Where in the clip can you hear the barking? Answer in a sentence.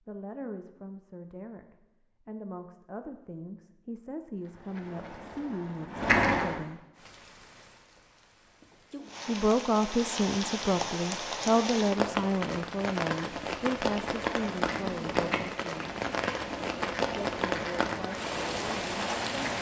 The barking can't be heard in this clip.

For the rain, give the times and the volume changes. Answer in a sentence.
You can hear the rain from 7.0 to 19.5 s, getting louder.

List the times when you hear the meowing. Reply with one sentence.
The meowing can't be heard in this clip.